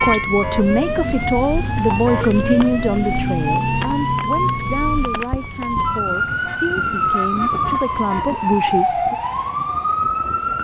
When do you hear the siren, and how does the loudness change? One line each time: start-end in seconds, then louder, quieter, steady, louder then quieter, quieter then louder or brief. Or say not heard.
0.0-10.6 steady.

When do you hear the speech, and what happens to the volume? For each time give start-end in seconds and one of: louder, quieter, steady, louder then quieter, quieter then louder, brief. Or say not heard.
0.0-9.2 quieter then louder.